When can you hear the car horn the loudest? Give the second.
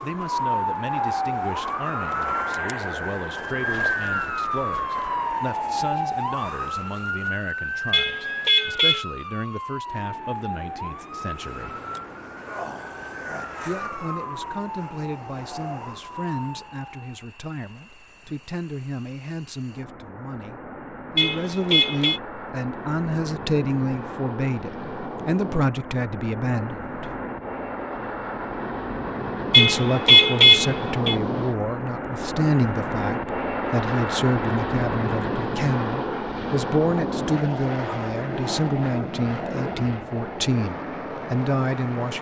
30 s.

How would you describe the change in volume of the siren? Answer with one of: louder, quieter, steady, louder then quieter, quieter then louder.
quieter.